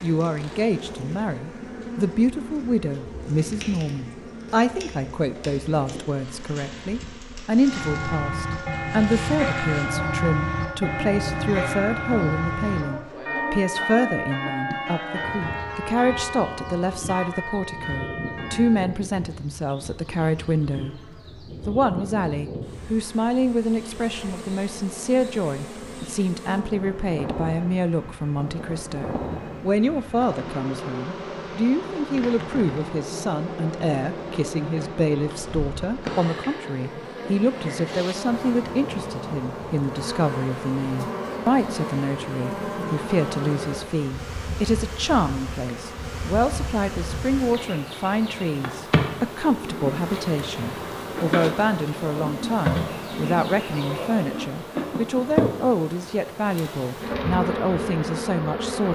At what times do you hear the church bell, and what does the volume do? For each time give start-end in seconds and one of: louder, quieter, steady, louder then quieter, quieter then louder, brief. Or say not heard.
7.6-18.9 quieter.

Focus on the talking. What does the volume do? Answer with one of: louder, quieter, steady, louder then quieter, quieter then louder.
steady.